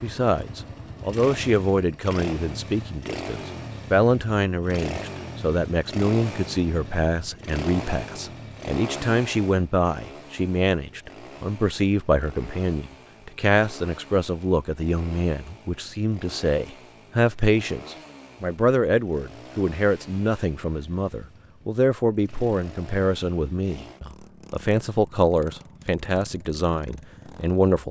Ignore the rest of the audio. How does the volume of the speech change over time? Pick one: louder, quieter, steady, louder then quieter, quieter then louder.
steady.